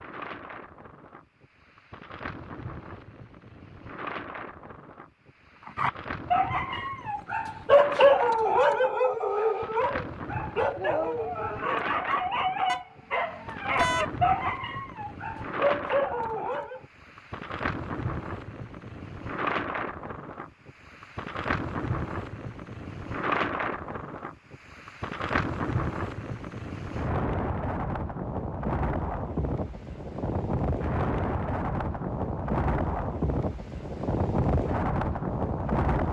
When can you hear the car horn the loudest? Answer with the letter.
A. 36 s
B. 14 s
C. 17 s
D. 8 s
B.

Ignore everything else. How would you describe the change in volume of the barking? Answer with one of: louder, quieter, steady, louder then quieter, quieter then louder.
quieter.